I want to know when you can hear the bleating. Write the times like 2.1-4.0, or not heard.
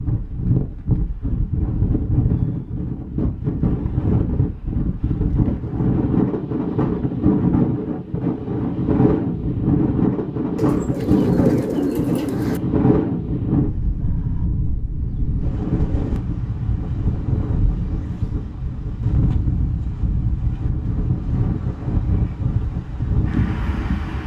not heard.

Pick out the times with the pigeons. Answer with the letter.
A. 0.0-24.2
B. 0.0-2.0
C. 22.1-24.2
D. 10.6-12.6
D.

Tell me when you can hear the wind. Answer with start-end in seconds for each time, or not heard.
0.0-24.2.